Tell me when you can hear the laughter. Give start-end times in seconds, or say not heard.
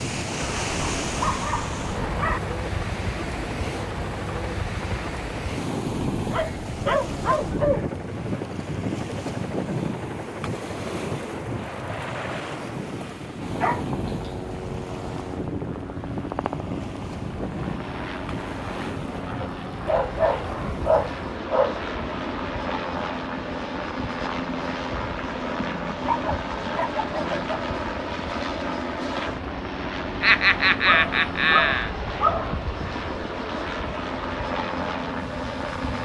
30.2-31.9.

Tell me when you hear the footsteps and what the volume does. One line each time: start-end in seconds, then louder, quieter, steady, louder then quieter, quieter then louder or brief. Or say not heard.
not heard.